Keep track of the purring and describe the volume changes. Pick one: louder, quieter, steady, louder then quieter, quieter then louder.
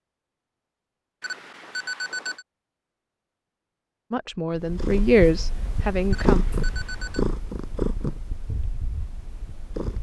louder then quieter.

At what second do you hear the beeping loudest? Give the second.
2 s.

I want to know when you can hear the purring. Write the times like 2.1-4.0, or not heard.
4.5-9.9.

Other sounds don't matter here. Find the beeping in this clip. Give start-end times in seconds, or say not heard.
1.2-2.5, 6.1-7.2.